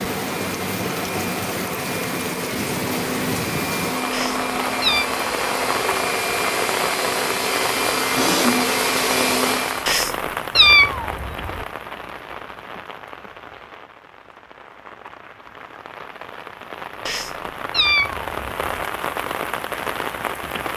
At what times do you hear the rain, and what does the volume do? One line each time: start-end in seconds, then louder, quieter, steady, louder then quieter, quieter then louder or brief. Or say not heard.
0.0-20.7 quieter then louder.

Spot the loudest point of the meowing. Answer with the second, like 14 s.
11 s.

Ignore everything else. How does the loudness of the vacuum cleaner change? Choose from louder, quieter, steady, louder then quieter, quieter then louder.
louder.